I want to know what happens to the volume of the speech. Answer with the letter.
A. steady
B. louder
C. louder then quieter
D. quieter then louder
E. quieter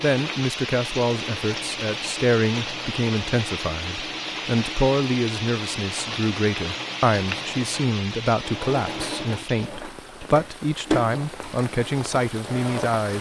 A.